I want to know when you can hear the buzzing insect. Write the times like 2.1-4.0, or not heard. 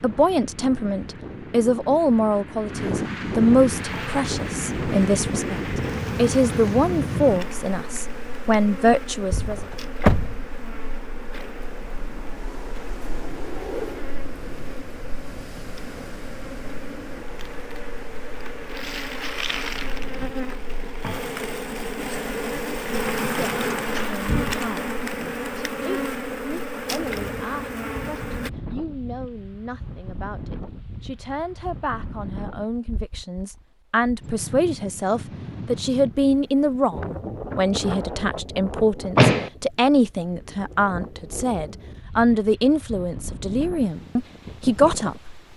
3.7-28.5.